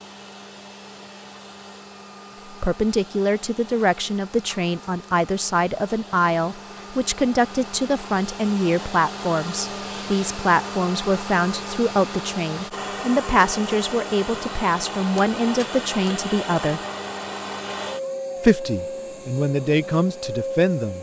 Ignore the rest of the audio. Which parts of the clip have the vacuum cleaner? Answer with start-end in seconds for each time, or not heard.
0.0-20.9.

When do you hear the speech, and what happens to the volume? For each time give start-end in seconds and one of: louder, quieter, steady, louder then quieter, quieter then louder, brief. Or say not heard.
2.5-16.8 steady
18.4-20.9 brief.